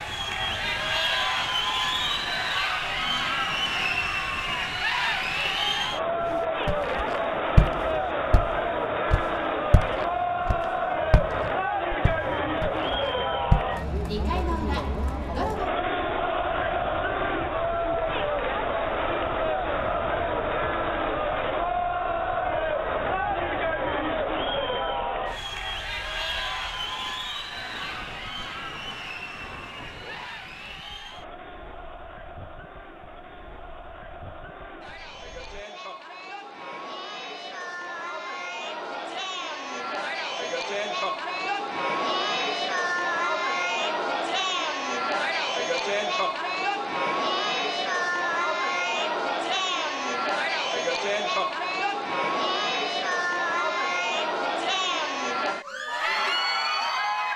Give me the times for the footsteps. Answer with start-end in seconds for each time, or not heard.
6.2-13.7.